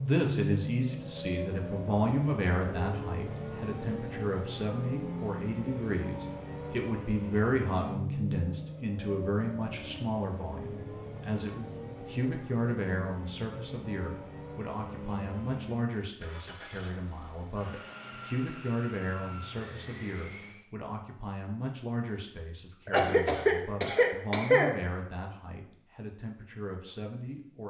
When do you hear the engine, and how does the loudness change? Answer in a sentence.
The engine can be heard from 0.0 to 20.6 s, getting quieter.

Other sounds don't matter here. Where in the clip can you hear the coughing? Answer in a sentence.
You can hear the coughing from 22.9 to 24.8 s.